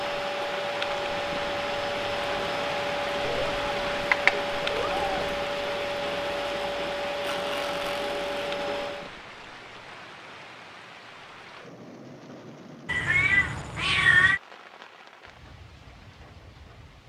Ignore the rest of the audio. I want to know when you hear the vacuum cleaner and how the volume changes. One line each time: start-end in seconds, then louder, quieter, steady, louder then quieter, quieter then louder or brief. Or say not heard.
0.0-9.1 steady.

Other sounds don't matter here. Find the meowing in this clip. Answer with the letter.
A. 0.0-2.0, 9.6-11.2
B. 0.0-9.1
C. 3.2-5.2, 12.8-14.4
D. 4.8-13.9
C.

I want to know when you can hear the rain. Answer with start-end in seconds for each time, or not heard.
0.0-17.0.